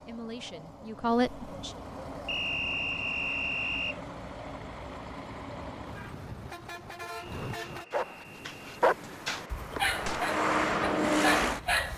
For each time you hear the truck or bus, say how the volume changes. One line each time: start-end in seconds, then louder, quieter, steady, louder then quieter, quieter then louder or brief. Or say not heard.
0.0-11.9 louder.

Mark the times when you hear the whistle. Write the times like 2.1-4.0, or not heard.
2.2-4.0, 7.2-8.8.